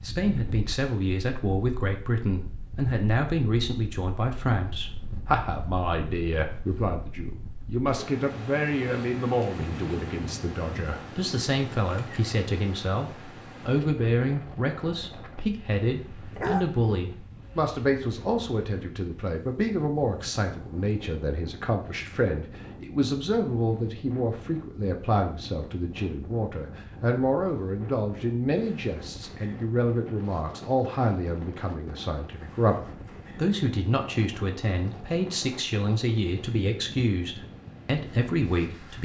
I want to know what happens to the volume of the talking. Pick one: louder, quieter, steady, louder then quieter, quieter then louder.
steady.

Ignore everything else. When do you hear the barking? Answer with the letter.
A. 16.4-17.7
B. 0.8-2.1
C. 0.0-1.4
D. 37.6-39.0
A.